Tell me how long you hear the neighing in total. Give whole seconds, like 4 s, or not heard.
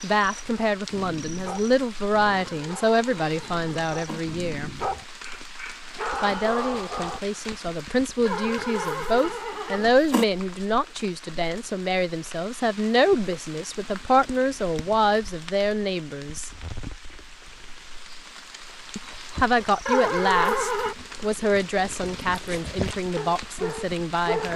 5 s.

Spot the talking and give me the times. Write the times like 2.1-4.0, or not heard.
0.0-4.7, 6.2-16.5, 18.9-24.5.